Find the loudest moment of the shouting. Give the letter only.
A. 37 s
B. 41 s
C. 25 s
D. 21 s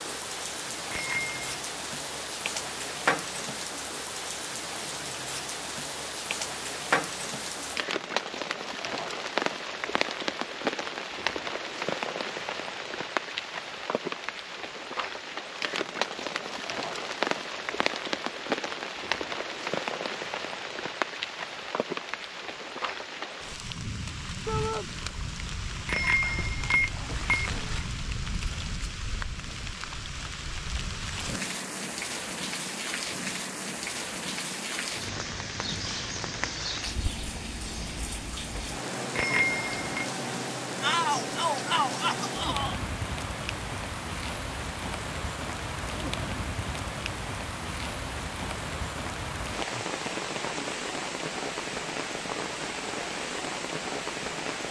B.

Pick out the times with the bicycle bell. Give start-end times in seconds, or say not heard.
0.9-1.6, 25.9-27.6, 39.1-40.0.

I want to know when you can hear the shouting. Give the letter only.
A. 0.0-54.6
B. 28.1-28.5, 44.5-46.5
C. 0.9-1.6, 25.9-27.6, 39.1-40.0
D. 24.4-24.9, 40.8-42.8
D.